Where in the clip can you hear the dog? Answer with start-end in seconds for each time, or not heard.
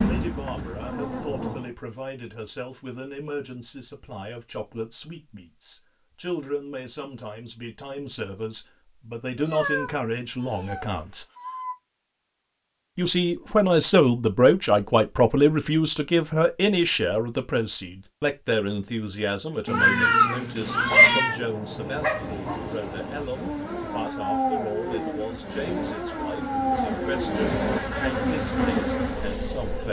20.6-27.6.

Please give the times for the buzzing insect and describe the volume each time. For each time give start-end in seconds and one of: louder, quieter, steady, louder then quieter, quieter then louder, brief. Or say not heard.
0.0-1.8 brief
21.6-29.8 louder.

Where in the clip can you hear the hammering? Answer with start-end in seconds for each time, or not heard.
not heard.